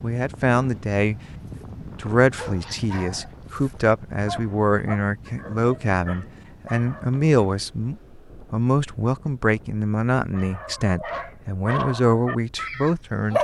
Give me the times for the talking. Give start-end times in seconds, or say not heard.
0.0-1.1, 2.0-13.3.